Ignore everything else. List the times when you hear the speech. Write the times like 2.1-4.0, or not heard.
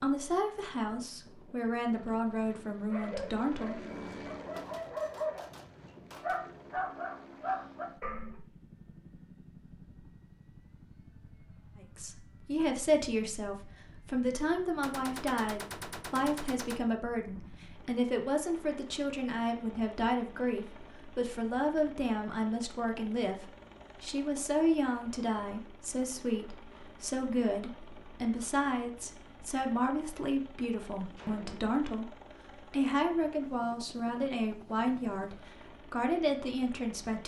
0.0-3.9, 11.8-37.2.